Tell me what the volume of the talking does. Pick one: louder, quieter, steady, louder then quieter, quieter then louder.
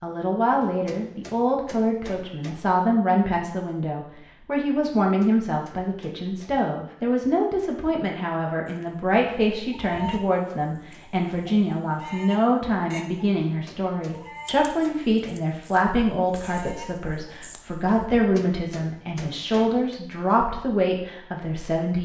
steady.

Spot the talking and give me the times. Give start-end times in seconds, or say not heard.
0.0-21.9.